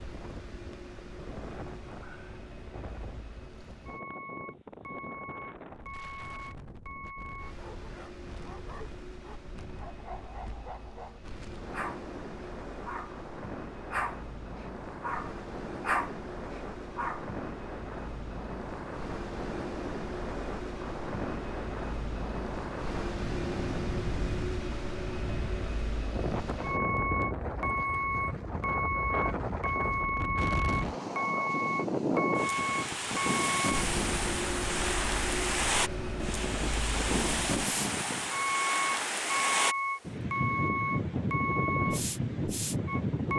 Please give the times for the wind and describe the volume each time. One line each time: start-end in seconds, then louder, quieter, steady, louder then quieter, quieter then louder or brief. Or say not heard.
0.0-43.3 louder.